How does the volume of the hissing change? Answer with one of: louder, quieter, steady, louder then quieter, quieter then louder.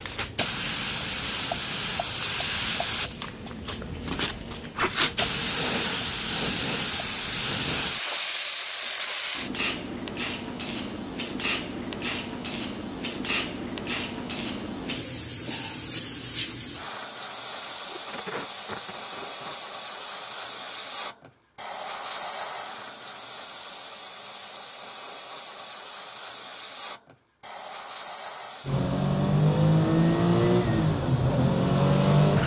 quieter.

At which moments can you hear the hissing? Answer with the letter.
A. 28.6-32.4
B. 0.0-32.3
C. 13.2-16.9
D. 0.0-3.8
B.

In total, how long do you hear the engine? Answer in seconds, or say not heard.
4 s.